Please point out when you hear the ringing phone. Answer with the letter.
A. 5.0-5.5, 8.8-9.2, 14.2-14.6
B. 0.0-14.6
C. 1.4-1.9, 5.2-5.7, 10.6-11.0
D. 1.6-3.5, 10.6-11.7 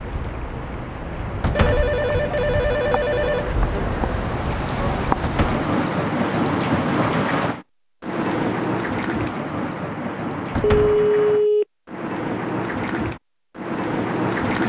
D.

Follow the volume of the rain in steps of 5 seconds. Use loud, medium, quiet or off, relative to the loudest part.
medium, loud, loud.